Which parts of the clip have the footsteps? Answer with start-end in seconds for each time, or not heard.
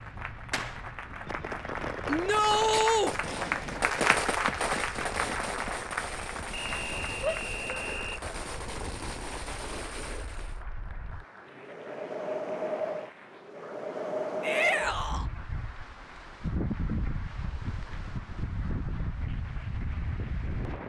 not heard.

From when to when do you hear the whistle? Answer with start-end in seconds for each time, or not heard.
6.5-8.2.